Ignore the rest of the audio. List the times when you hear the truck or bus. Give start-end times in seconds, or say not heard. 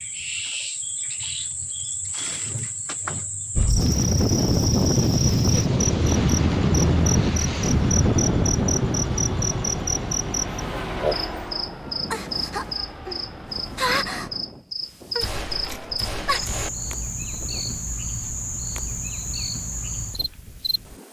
6.0-14.6.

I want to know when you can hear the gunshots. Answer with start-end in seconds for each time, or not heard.
15.2-16.7.